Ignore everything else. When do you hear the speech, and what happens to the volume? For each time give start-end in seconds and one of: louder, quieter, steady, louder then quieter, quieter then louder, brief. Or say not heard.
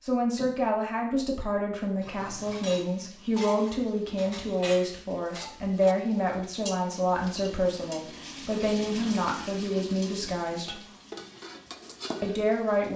0.0-10.8 steady
12.2-12.9 brief.